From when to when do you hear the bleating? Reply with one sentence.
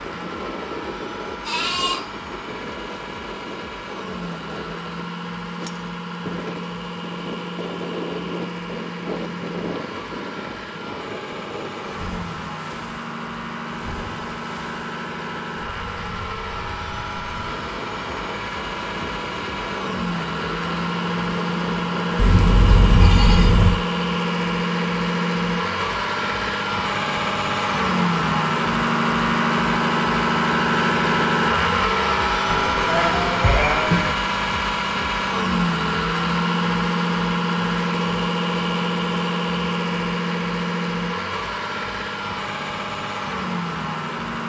The bleating can be heard from 1.4 to 2.0 s, from 22.1 to 23.8 s and from 32.5 to 34.1 s.